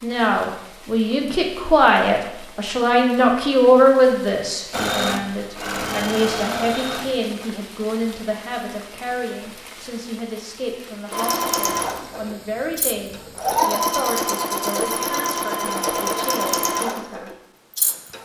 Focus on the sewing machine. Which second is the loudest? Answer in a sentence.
The loudest moment of the sewing machine is at 14 seconds.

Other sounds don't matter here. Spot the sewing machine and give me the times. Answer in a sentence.
The sewing machine can be heard from 4.7 to 7.5 s and from 11.1 to 18.2 s.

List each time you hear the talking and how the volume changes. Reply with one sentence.
The talking can be heard from 0.0 to 17.3 s, getting quieter.